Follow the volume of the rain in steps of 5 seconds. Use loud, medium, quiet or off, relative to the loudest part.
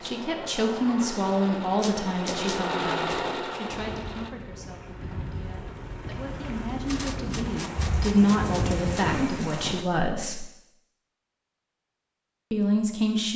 medium, loud, off.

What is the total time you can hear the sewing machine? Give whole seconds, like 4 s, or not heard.
4 s.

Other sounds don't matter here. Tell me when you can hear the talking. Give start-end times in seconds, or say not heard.
0.0-10.4, 12.5-13.3.